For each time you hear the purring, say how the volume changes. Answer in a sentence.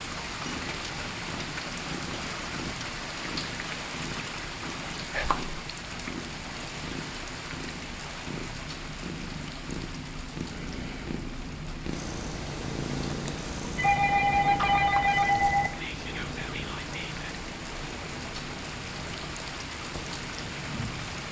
You can hear the purring from 0.0 to 21.2 s, getting louder then quieter.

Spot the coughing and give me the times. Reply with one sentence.
The coughing can't be heard in this clip.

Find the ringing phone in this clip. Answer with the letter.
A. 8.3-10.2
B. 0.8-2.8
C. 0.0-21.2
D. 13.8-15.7
D.